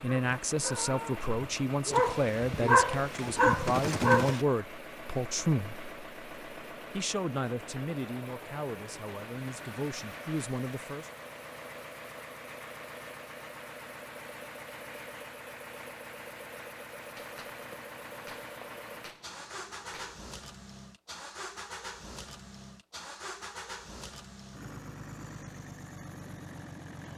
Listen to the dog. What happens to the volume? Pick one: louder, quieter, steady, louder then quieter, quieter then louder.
quieter then louder.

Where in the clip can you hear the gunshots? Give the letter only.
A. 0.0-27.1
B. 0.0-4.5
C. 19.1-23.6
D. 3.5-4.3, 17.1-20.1
D.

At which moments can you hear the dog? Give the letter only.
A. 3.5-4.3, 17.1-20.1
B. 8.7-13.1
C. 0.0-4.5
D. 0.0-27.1
C.